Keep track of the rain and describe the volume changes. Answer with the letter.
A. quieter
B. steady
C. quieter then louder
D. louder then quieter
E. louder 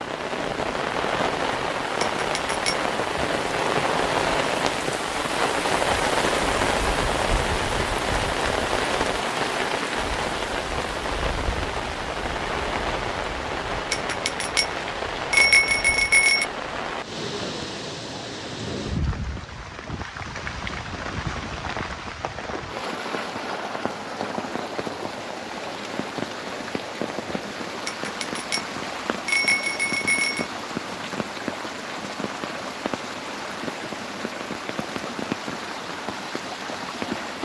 A.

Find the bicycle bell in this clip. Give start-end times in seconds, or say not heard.
2.0-2.9, 13.9-16.4, 27.9-30.5.